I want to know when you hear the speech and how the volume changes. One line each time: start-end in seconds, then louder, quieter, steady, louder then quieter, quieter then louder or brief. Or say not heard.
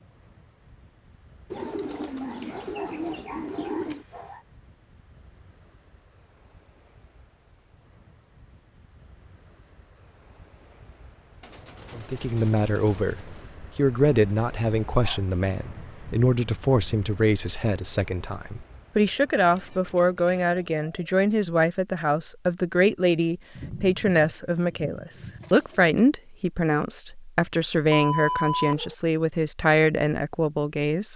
11.9-31.1 steady.